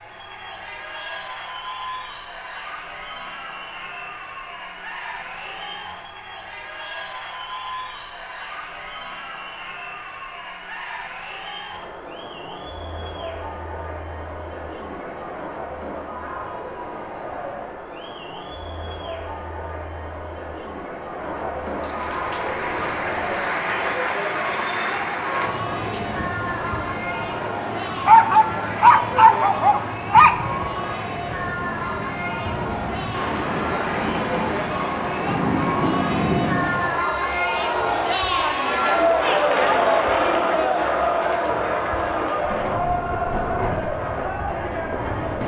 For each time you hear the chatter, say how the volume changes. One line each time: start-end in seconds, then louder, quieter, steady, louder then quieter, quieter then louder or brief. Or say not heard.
0.0-45.4 louder.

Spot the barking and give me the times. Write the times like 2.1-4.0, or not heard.
27.9-30.4.